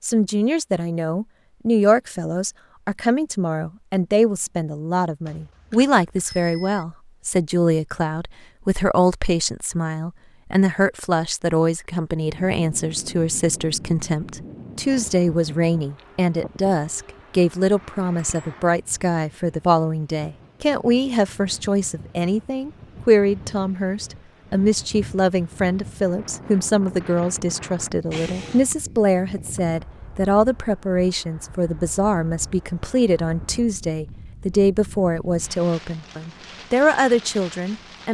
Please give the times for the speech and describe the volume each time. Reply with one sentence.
You can hear the speech from 0.0 to 38.0 s, at a steady volume.